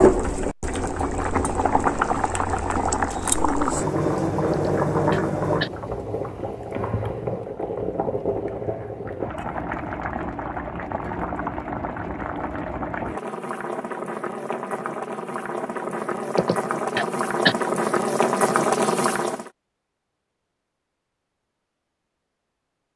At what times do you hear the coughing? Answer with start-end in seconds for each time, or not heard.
4.5-5.7, 16.4-17.6.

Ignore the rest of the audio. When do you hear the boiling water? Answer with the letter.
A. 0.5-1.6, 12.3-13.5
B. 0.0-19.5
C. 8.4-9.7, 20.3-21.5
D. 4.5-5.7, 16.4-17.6
B.